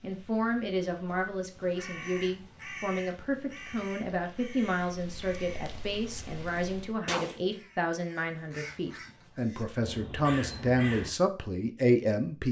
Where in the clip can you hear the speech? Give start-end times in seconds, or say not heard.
0.0-12.4.